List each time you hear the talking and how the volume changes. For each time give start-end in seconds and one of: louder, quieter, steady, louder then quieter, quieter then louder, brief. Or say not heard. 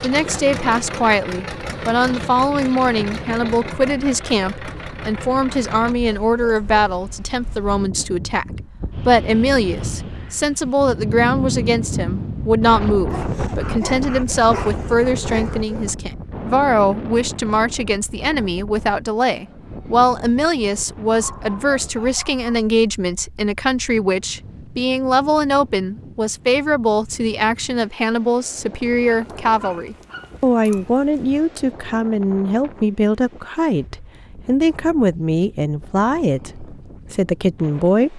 0.0-38.1 steady.